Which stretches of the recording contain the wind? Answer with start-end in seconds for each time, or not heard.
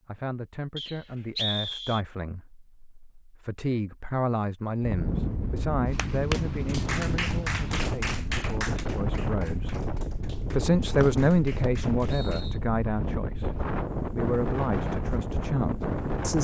4.8-16.3.